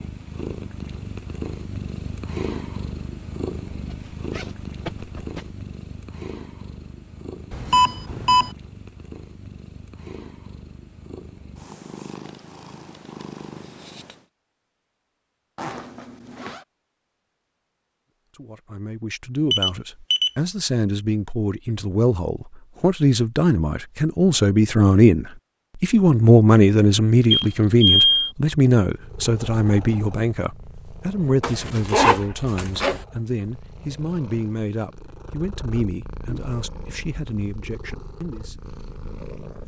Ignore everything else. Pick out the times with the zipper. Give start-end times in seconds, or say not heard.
3.7-5.5, 15.6-16.6, 31.4-33.0.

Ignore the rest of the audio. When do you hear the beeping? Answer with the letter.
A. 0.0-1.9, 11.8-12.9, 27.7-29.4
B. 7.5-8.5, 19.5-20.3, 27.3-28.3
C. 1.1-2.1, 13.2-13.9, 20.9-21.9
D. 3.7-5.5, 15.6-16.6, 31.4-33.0
B.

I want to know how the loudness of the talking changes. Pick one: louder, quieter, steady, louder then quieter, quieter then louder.
louder then quieter.